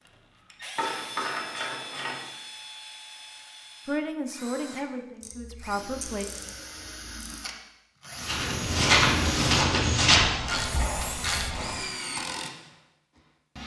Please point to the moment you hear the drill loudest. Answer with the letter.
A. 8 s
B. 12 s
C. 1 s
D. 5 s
B.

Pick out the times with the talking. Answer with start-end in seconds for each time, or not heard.
3.9-6.3.